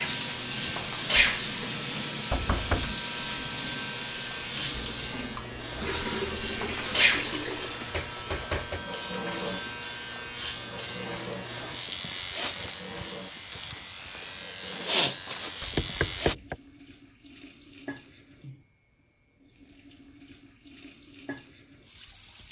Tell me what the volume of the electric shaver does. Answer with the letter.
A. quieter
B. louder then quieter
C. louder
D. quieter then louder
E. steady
E.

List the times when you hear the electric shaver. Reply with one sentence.
You can hear the electric shaver from 0.0 to 16.4 s.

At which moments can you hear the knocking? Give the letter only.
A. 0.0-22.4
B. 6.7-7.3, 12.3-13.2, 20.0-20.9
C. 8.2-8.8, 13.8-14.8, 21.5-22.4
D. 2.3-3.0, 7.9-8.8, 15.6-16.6
D.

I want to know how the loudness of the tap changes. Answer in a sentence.
The volume of the tap goes down.